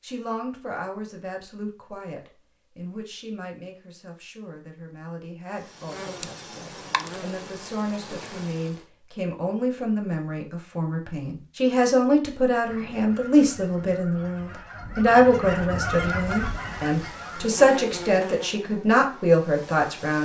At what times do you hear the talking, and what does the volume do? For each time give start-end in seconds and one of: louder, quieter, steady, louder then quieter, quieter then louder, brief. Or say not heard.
0.0-20.1 louder.